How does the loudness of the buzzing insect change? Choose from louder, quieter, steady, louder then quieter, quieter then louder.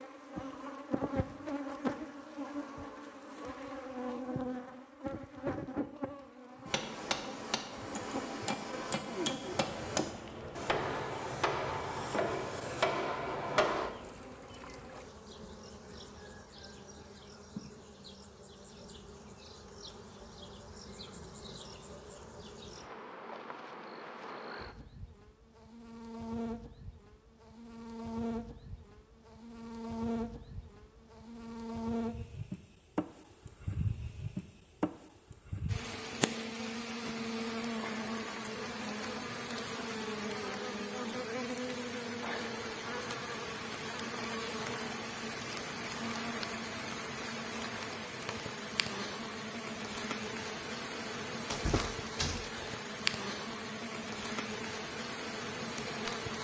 quieter then louder.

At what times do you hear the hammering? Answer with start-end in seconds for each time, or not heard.
6.7-13.9.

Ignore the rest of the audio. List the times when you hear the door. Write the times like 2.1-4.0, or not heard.
51.5-52.5.